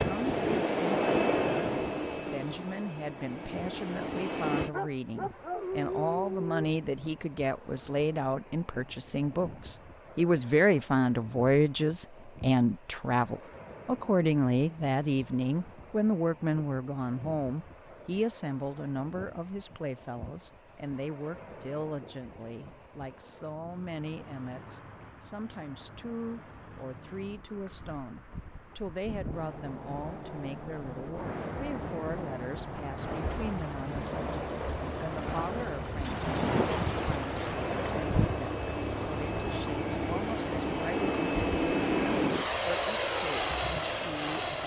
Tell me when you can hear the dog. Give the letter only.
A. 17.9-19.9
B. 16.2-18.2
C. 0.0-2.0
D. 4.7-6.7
D.